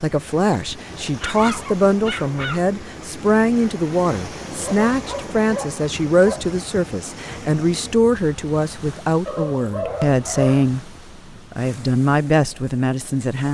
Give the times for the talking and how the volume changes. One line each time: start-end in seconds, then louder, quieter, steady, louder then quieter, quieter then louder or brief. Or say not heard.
0.0-13.4 steady.